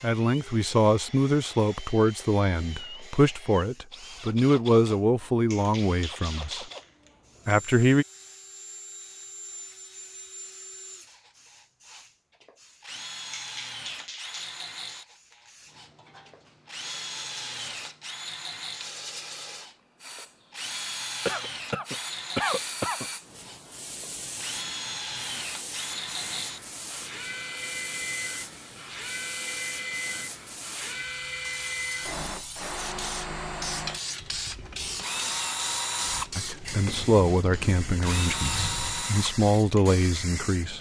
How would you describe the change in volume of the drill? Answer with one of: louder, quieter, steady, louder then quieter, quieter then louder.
louder.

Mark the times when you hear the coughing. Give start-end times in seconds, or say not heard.
21.2-23.1.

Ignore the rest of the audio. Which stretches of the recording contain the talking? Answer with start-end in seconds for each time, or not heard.
0.0-6.7, 7.5-8.1, 36.4-40.7.